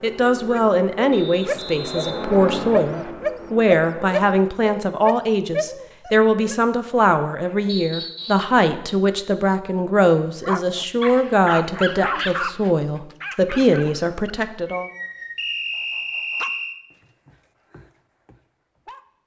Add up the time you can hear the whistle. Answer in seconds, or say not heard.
4 s.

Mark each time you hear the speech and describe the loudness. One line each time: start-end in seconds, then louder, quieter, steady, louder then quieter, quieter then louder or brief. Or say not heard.
0.0-14.8 steady.